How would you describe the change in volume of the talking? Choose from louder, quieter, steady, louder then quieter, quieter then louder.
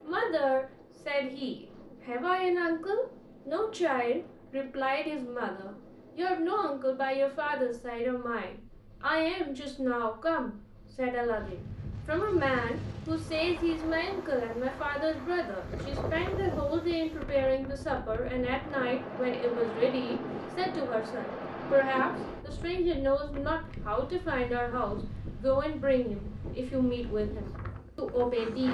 steady.